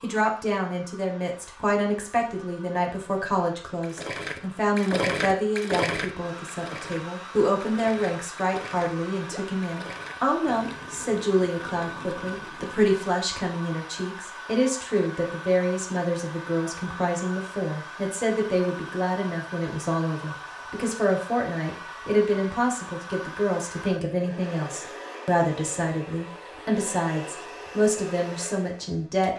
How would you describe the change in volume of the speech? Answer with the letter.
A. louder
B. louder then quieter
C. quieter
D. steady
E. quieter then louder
D.